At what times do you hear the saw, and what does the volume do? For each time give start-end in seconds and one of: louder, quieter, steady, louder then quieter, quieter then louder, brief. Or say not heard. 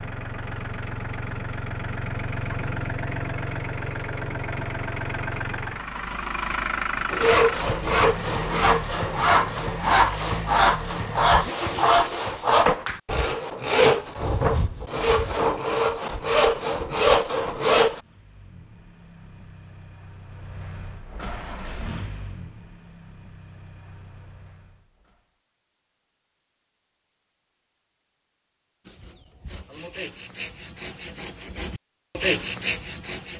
7.1-18.0 steady
28.9-33.3 louder.